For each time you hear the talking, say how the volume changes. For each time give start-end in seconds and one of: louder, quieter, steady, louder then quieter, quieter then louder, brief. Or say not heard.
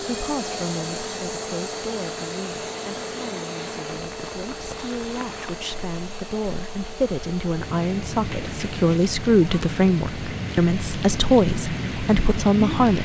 0.1-13.0 louder.